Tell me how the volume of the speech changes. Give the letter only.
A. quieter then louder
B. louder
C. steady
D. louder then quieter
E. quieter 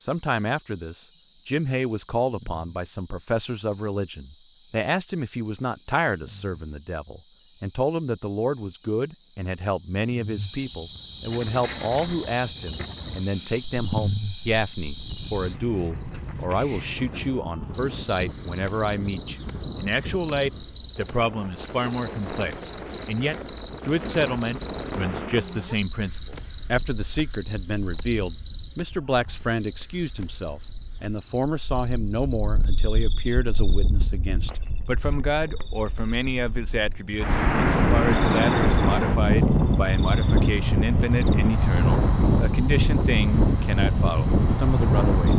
C.